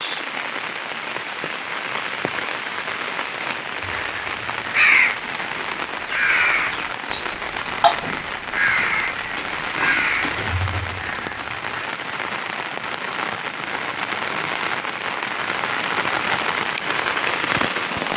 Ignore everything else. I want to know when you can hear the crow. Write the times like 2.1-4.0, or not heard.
3.9-11.8.